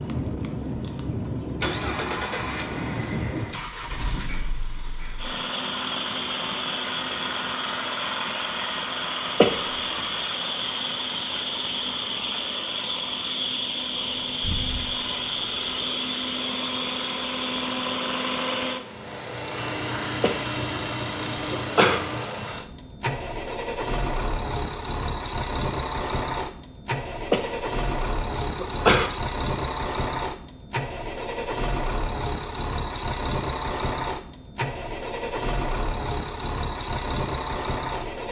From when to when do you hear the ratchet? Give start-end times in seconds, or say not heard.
not heard.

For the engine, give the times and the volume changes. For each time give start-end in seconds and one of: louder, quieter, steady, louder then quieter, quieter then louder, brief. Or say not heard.
0.0-38.2 steady.